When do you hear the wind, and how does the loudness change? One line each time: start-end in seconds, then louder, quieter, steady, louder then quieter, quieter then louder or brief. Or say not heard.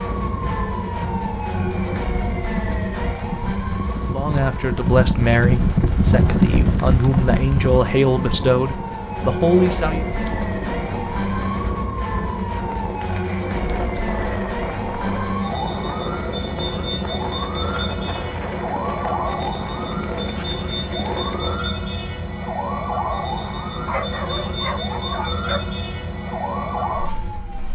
0.1-21.6 louder then quieter.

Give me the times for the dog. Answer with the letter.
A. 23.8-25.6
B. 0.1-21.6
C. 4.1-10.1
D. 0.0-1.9
A.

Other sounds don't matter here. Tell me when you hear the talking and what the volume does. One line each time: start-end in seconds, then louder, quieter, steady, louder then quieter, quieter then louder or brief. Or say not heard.
4.1-10.1 quieter then louder.